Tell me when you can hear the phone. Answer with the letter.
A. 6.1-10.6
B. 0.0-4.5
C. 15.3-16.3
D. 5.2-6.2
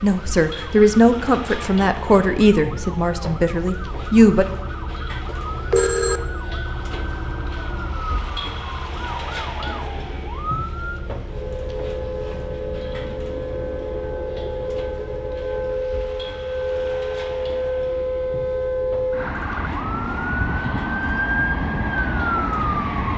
D.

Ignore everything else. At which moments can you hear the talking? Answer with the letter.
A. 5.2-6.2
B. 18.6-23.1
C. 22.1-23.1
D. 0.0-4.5
D.